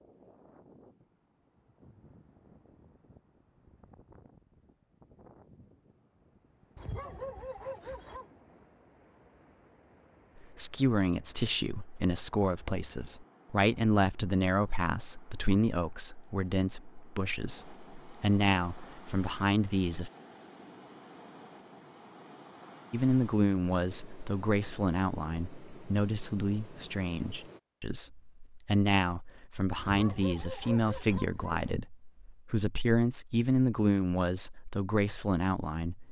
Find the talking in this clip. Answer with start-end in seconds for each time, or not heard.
10.4-20.1, 22.9-36.0.